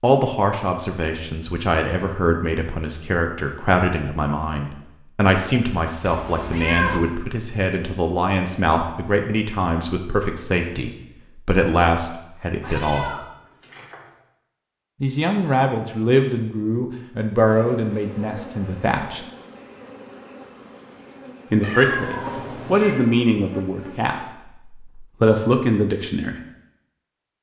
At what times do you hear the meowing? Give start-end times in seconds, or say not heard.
6.0-7.0, 12.6-14.1, 21.6-23.1.